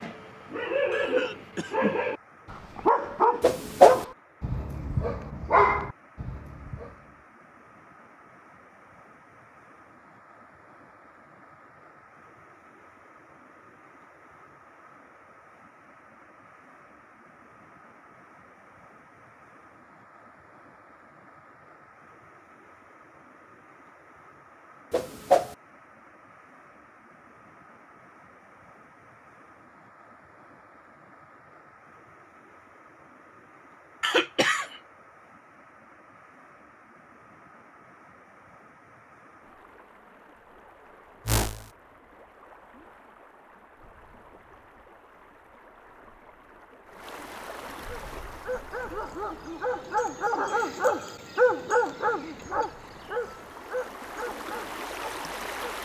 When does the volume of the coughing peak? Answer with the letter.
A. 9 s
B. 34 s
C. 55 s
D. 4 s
B.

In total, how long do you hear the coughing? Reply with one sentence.
The coughing can be heard for 2 seconds in total.